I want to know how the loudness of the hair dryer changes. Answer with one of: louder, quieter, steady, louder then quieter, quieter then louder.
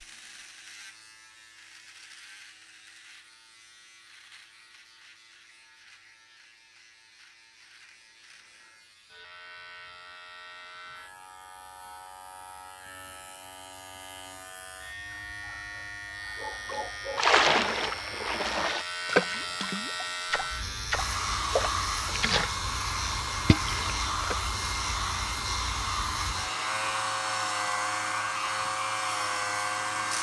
steady.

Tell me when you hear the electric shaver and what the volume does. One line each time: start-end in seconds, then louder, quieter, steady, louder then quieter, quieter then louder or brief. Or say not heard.
0.0-30.1 louder.